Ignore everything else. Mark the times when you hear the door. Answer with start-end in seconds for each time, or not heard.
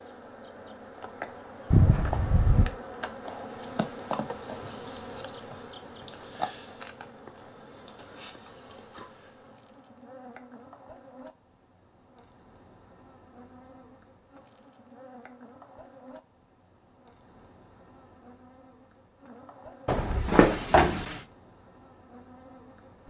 1.7-2.8, 19.9-21.2.